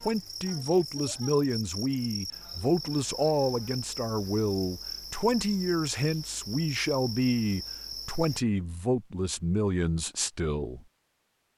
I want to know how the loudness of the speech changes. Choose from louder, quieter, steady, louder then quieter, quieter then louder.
steady.